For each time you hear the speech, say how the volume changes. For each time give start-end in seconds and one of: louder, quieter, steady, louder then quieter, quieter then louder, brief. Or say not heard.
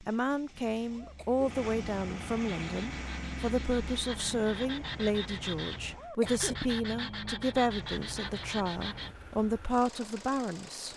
0.0-10.9 steady.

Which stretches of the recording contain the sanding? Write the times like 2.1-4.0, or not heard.
2.5-9.2.